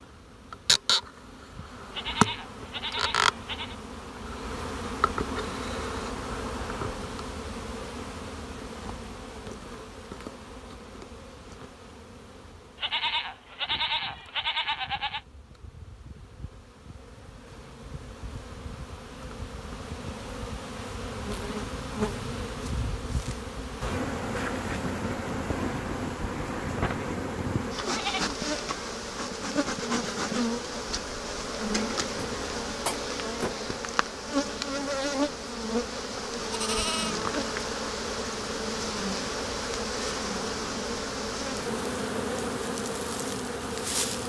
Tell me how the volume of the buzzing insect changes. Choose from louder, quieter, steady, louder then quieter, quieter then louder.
quieter then louder.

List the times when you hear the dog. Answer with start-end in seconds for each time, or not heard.
not heard.